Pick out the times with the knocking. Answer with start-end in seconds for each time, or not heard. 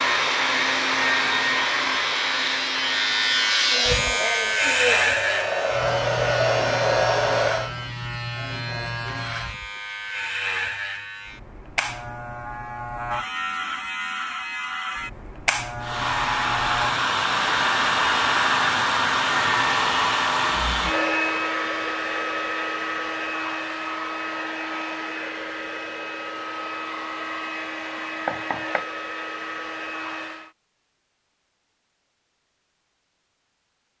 28.2-28.9.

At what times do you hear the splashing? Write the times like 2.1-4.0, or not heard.
not heard.